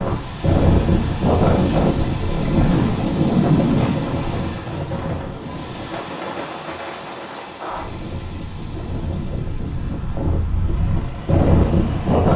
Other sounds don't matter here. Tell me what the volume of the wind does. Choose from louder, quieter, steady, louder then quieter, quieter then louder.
quieter then louder.